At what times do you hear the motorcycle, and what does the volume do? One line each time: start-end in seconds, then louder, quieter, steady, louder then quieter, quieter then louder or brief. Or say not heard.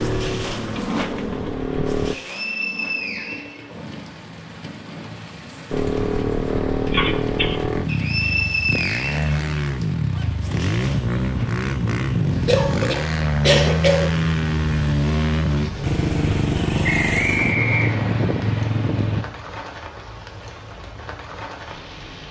0.0-2.1 brief
5.7-19.2 steady.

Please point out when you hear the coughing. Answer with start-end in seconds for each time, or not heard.
6.9-7.6, 12.4-14.2.